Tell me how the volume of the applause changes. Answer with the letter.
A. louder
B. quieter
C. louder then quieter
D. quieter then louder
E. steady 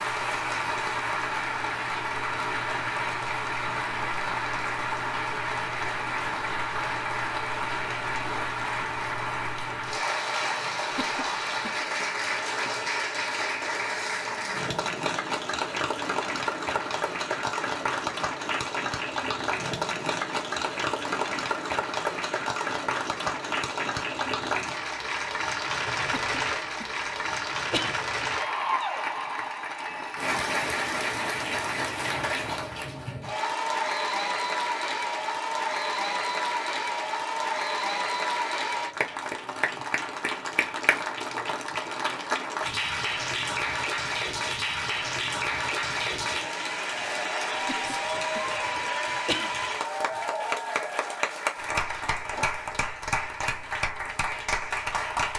E.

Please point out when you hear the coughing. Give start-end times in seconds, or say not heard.
10.9-11.8, 26.1-27.9, 47.6-49.5.